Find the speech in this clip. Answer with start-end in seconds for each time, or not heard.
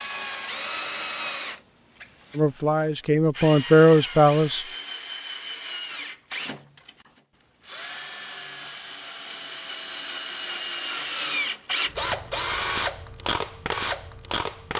2.4-4.7.